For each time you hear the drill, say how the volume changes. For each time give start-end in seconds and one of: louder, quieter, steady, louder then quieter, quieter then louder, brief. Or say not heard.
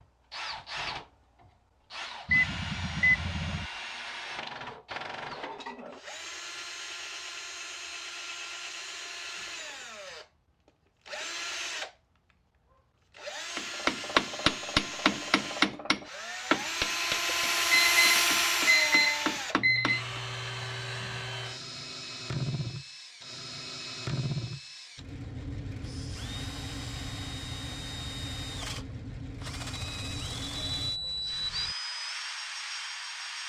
0.0-33.4 louder then quieter.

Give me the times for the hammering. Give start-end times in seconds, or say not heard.
13.6-20.2.